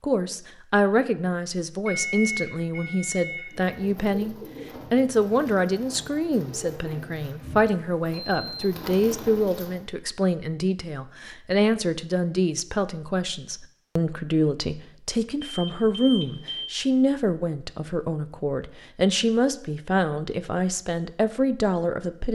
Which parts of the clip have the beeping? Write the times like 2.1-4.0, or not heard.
1.9-3.8, 7.7-8.8, 15.4-16.8.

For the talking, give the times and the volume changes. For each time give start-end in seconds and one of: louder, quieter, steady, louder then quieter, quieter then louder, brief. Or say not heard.
0.0-22.3 steady.